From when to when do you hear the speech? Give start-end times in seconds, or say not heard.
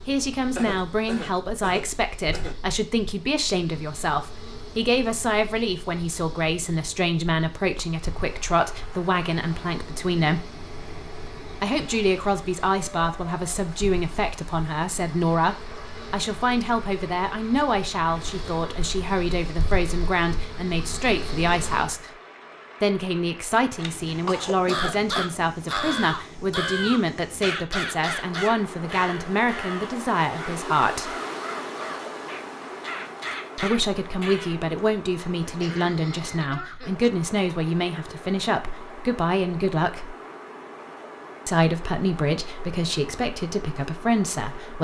0.1-10.4, 11.6-22.1, 22.8-31.1, 33.5-40.1, 41.5-44.8.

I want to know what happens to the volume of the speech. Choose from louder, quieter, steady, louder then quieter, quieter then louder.
steady.